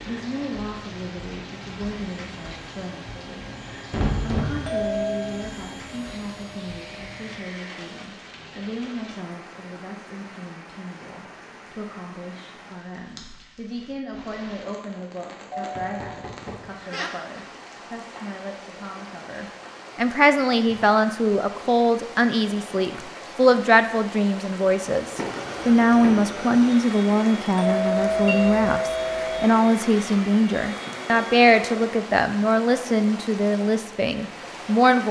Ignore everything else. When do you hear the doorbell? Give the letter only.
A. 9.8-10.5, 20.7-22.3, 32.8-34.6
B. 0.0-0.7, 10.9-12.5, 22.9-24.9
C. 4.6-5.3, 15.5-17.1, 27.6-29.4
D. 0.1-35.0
C.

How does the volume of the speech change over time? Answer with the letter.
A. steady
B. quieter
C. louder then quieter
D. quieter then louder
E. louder
E.